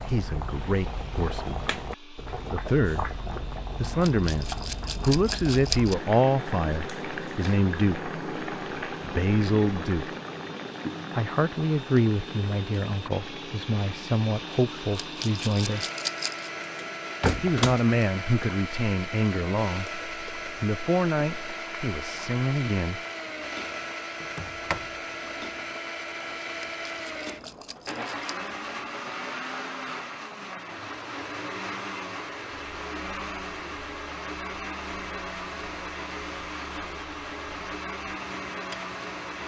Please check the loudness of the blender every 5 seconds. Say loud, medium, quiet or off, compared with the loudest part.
quiet, quiet, medium, loud, loud, loud, loud, loud.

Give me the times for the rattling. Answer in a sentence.
The rattling can be heard from 4.0 to 6.0 s, from 14.9 to 16.5 s and from 26.6 to 28.3 s.